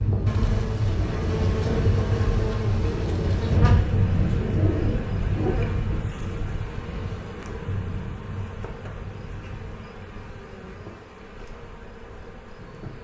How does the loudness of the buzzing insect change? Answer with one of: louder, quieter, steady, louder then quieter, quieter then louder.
quieter.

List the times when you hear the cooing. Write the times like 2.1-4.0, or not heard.
3.5-5.5.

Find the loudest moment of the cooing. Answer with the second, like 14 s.
4 s.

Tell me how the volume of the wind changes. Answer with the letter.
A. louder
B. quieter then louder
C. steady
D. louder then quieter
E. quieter
E.